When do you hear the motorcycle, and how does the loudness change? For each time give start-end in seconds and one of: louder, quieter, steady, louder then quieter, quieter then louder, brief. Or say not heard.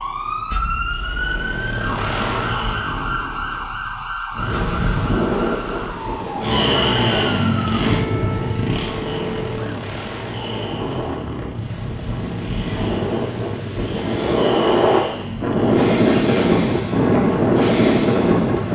0.0-4.1 louder then quieter
6.4-18.7 quieter.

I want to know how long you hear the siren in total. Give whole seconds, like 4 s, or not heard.
10 s.